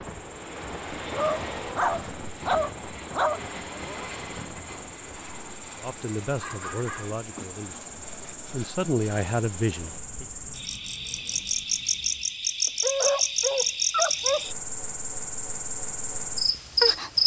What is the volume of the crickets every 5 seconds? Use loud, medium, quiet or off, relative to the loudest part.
quiet, quiet, loud, loud.